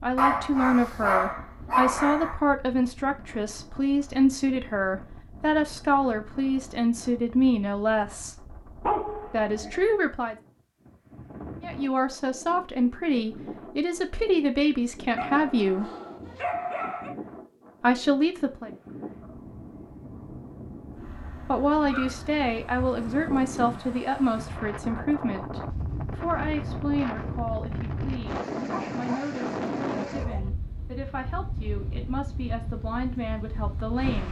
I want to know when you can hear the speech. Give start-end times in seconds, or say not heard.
0.0-8.4, 9.3-10.3, 11.6-15.9, 17.8-18.7, 21.4-34.2.